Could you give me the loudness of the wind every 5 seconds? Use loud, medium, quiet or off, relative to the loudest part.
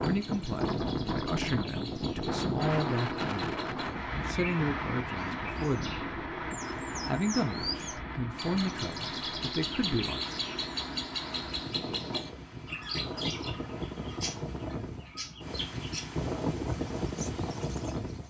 loud, medium, medium, loud.